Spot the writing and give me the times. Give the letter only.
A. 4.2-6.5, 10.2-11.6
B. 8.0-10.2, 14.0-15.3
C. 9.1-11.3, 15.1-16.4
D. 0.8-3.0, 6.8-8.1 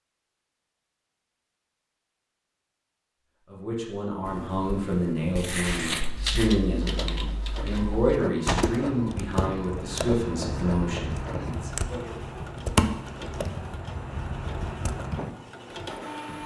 A.